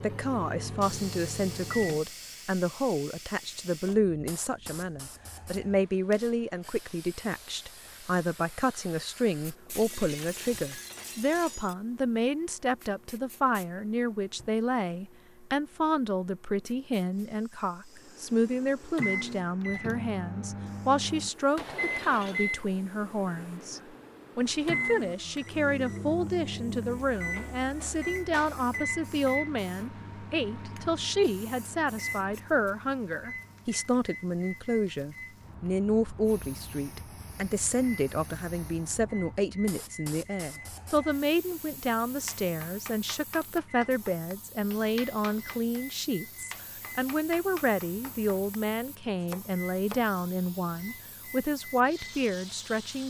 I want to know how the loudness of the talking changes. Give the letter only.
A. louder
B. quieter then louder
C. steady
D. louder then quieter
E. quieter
C.